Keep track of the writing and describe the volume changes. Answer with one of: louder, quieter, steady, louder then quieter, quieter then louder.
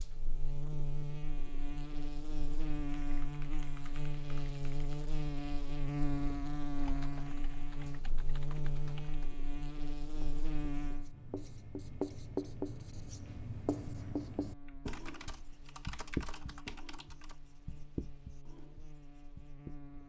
quieter.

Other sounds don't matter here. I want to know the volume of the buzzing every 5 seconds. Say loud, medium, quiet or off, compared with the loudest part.
loud, loud, medium, quiet.